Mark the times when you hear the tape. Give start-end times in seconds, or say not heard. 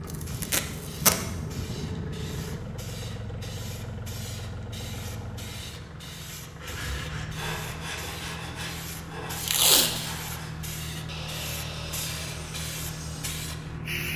0.1-1.2, 9.4-10.1.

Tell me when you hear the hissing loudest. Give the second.
14 s.